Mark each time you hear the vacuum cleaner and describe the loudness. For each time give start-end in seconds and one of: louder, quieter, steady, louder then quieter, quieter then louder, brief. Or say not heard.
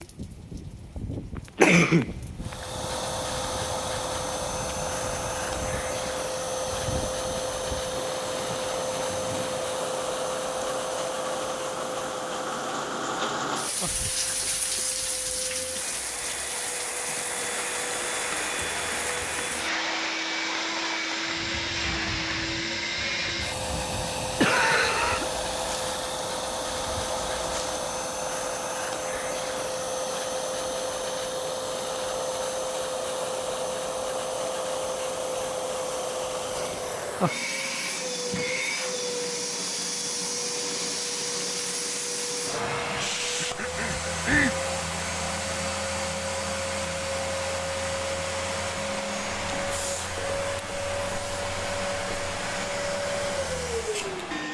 2.4-54.4 steady.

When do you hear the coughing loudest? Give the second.
2 s.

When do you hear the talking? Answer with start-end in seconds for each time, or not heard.
not heard.